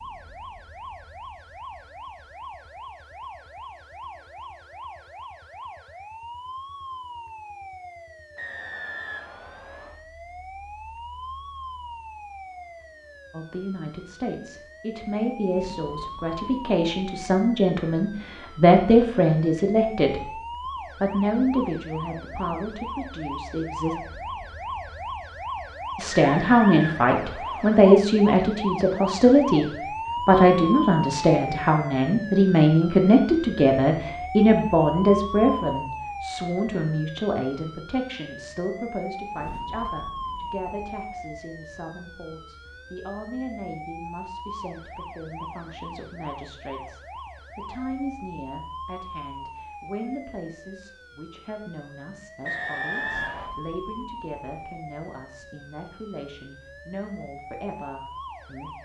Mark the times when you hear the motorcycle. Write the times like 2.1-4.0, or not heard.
not heard.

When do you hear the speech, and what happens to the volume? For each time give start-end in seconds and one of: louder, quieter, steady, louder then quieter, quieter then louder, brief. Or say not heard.
13.3-23.9 louder then quieter
25.9-58.8 quieter.